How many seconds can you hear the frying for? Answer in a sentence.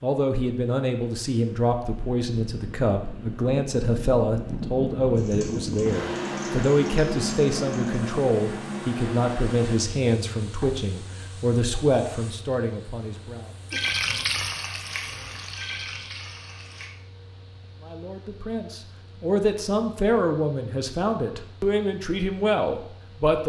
You can hear the frying for 12 seconds altogether.